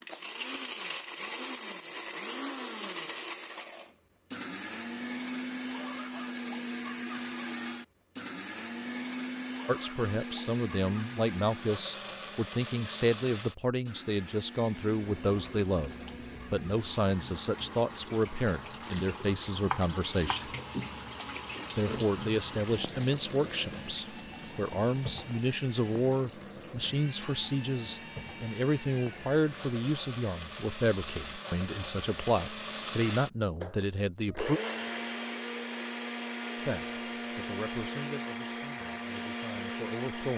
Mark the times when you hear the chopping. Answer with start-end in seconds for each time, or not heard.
19.2-20.4.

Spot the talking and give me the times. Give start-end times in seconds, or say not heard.
9.7-20.5, 21.8-34.6, 36.5-40.3.